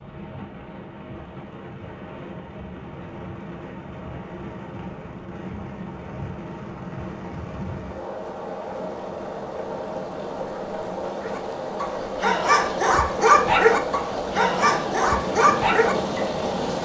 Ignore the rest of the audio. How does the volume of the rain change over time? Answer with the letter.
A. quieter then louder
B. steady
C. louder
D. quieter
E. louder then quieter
C.